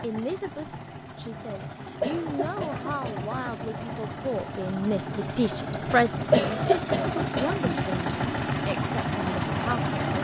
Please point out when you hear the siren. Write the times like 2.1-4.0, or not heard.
not heard.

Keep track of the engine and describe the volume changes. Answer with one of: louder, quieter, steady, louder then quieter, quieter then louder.
louder.